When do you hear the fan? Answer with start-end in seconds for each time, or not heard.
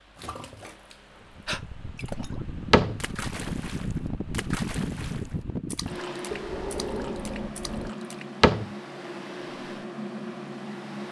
0.0-11.0.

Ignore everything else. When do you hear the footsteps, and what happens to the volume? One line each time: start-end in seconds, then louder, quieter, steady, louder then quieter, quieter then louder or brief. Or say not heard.
not heard.